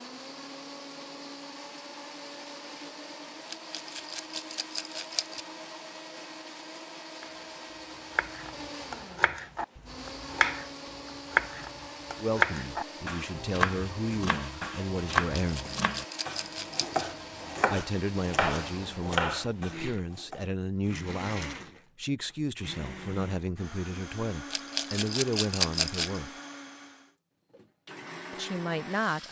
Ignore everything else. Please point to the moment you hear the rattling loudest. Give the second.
26 s.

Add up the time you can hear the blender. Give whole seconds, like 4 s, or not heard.
29 s.